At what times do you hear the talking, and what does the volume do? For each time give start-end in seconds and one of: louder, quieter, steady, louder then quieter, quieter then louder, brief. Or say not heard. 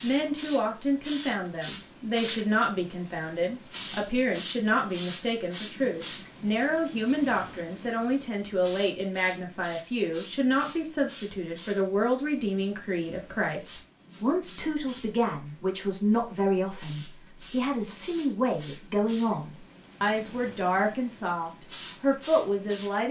0.0-23.0 steady.